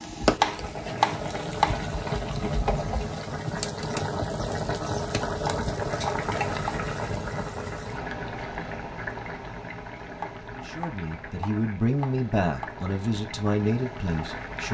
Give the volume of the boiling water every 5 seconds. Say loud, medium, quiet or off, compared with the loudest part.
loud, loud, medium.